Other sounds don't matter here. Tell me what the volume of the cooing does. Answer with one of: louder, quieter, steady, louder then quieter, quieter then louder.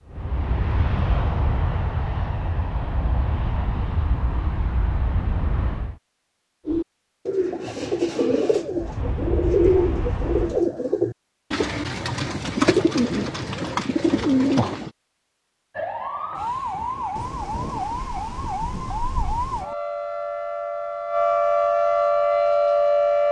steady.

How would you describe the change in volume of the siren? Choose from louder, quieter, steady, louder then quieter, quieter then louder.
louder.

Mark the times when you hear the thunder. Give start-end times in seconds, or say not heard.
17.1-19.6.